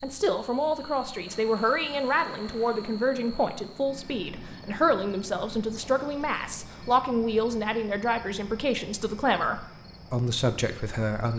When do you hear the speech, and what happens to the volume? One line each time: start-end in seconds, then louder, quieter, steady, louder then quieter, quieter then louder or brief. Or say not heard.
0.0-11.3 steady.